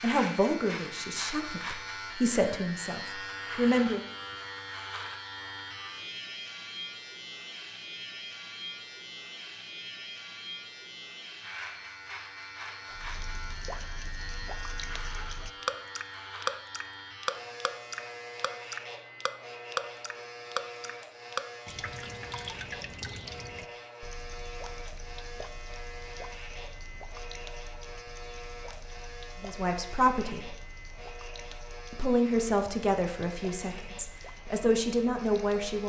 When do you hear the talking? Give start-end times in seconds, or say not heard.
0.0-4.0, 29.4-30.6, 31.9-35.8.